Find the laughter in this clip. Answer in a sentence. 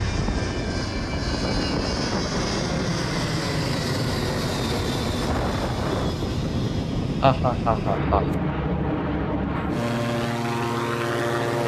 The laughter can be heard from 7.2 to 8.3 s.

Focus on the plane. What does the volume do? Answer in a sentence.
The loudness of the plane stays about the same.